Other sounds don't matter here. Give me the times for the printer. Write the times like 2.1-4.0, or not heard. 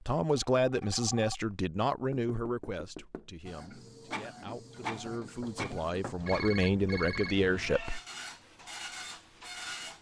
3.5-9.9.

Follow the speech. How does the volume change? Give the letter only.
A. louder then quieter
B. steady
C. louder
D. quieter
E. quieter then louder
E.